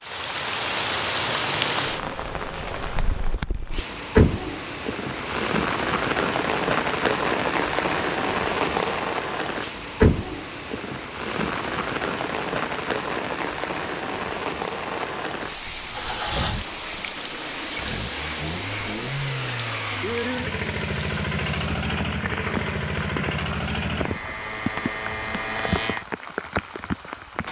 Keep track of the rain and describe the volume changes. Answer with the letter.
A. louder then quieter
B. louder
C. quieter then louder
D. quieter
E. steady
D.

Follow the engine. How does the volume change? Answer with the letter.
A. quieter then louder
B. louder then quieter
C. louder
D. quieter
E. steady
E.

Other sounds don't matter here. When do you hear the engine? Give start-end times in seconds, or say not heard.
15.8-26.1.